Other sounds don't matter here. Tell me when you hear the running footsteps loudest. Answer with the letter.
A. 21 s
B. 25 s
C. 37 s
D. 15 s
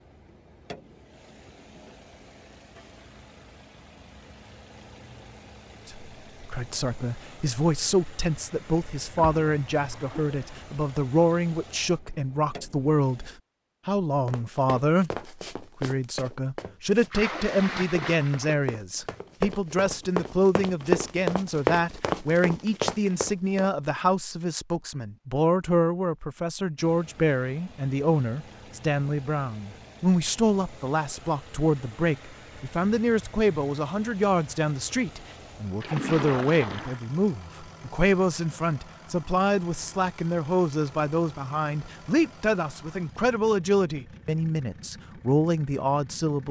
A.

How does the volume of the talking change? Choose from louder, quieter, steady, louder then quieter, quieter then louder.
steady.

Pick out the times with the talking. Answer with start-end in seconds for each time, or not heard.
5.8-46.4.